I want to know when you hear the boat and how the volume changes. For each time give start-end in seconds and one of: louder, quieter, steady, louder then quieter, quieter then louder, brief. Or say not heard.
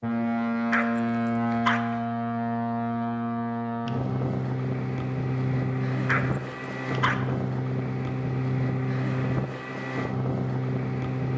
0.0-11.3 steady.